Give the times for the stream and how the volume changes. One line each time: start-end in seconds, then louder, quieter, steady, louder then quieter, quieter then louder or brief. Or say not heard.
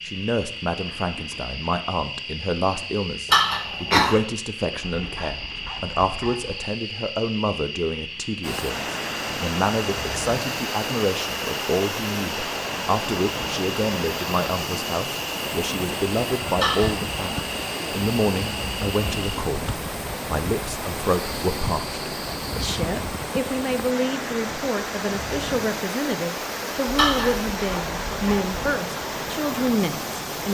8.4-30.4 steady.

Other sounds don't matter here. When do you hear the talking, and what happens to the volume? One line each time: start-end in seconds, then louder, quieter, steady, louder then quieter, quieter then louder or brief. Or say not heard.
0.0-30.4 steady.